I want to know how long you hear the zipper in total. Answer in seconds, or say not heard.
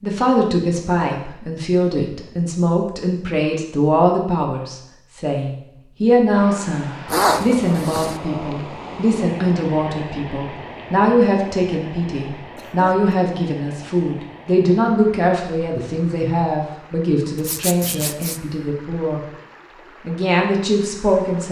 2 s.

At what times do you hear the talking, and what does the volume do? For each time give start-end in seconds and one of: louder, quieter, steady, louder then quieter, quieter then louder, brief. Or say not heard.
0.0-19.2 steady
20.1-21.4 brief.